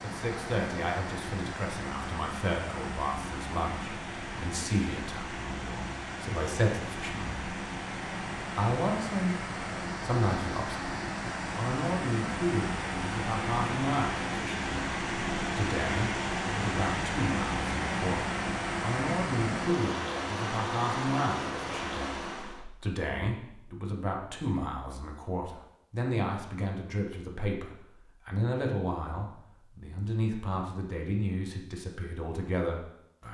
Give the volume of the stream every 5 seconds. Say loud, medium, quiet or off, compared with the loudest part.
medium, medium, loud, loud, loud, off, off.